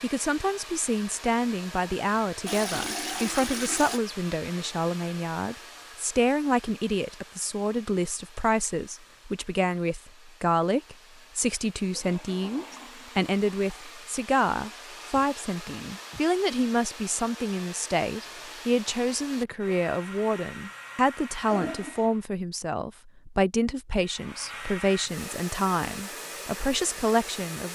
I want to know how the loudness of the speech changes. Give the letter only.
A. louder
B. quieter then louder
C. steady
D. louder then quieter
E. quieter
C.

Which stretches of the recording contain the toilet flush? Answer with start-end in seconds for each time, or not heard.
2.5-4.0, 11.8-13.9, 21.5-22.1.